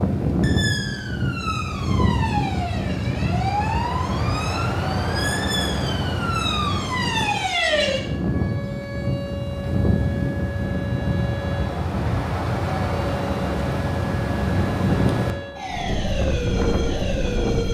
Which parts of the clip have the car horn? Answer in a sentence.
The car horn can't be heard in this clip.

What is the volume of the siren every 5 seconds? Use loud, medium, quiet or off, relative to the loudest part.
loud, loud, medium, loud.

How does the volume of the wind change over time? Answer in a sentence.
The volume of the wind stays about the same.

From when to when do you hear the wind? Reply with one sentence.
You can hear the wind from 0.0 to 17.7 s.